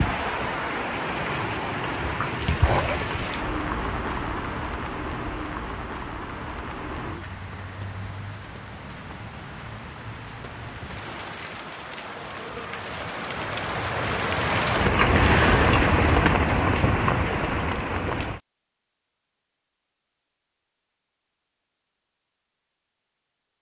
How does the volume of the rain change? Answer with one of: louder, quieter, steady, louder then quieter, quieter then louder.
quieter then louder.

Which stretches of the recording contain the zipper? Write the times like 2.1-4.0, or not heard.
2.6-3.2.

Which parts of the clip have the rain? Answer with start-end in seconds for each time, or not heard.
0.0-18.4.